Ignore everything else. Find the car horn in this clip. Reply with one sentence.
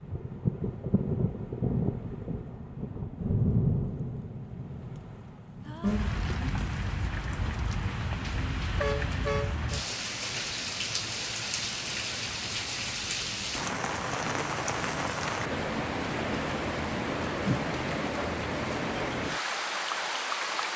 The car horn can be heard from 8.8 to 9.8 s.